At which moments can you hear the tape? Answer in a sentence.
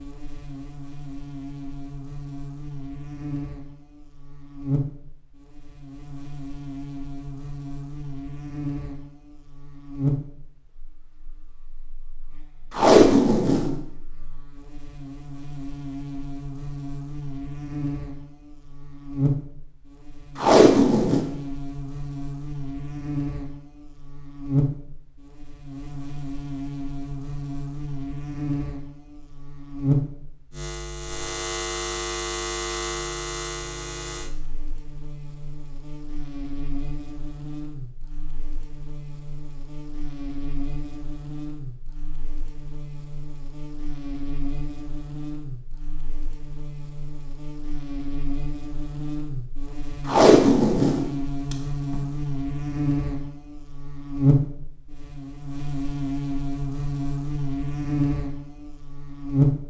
The tape can be heard from 12.8 to 13.8 s, from 20.4 to 21.2 s and from 50.0 to 52.0 s.